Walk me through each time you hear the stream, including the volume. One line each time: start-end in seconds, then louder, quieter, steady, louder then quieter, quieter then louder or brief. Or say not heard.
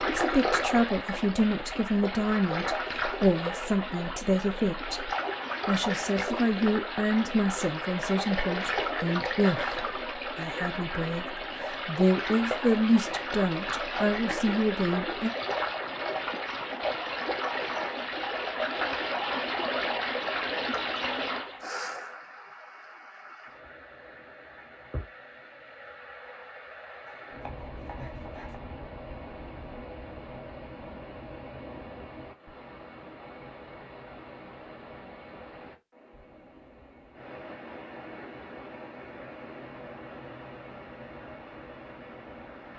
0.0-42.7 quieter.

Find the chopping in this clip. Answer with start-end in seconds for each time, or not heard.
27.1-28.6.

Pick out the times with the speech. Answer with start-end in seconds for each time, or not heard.
0.0-15.3.